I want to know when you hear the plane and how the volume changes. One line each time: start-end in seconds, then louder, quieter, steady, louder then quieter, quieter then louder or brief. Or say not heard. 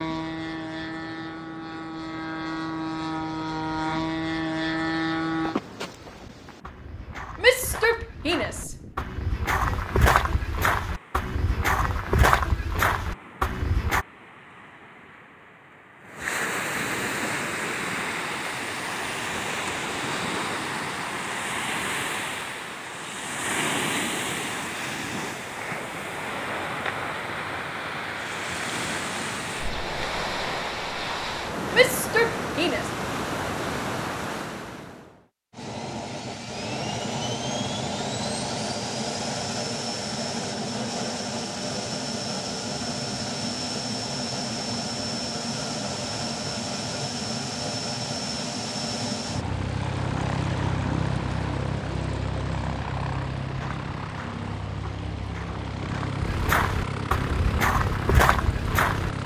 0.0-5.5 louder
35.5-59.2 steady.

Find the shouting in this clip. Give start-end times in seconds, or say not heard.
7.4-8.8, 31.7-32.9.